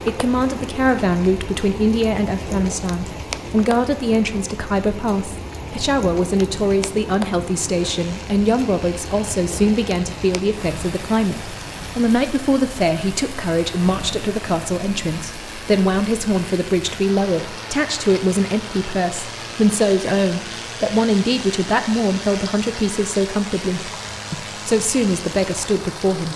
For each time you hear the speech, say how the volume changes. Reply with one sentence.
You can hear the speech from 0.1 to 26.3 s, at a steady volume.